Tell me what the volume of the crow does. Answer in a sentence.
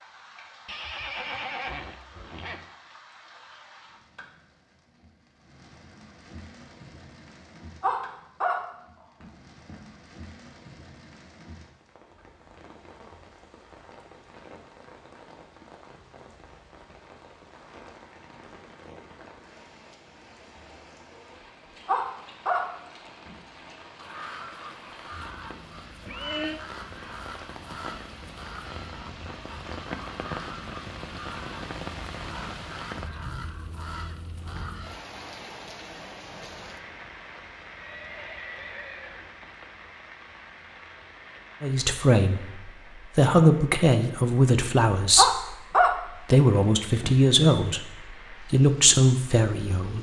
The loudness of the crow stays about the same.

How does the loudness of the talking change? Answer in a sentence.
The volume of the talking stays about the same.